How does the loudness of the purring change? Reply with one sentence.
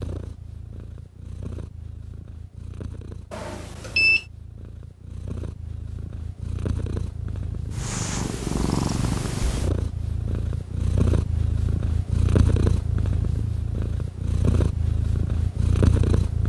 The loudness of the purring goes up.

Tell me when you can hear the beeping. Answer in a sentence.
You can hear the beeping from 3.3 to 4.2 s.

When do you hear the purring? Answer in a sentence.
You can hear the purring from 0.0 to 16.4 s.